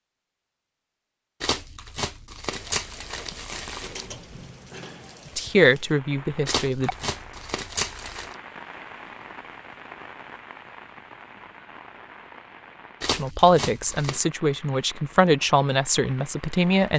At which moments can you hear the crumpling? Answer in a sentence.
You can hear the crumpling from 1.4 to 4.0 s, from 6.5 to 8.3 s and from 13.0 to 14.2 s.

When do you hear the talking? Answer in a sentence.
You can hear the talking from 5.3 to 7.0 s and from 13.1 to 16.9 s.